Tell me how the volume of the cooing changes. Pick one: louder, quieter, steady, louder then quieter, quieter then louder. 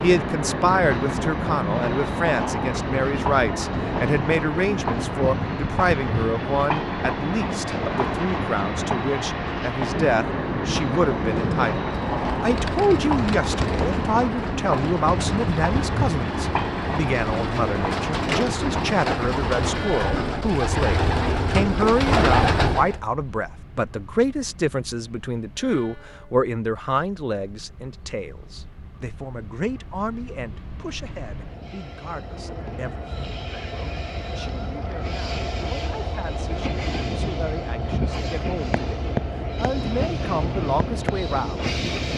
louder.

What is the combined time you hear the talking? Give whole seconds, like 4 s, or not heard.
42 s.